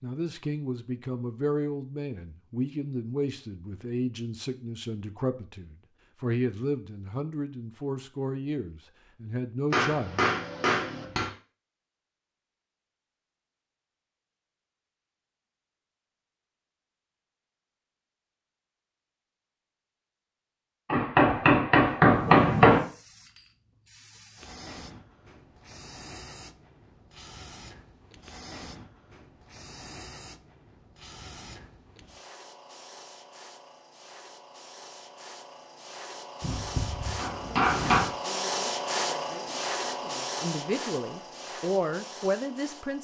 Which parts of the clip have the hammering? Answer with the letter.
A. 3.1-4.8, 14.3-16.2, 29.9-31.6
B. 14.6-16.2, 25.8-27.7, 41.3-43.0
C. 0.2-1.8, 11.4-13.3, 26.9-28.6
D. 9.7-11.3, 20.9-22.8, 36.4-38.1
D.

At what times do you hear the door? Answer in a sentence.
You can't hear the door here.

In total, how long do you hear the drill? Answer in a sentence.
You can't hear the drill here.